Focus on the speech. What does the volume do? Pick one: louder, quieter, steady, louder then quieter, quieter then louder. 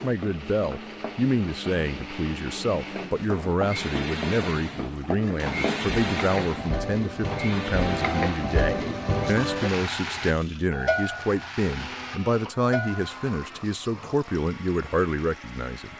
steady.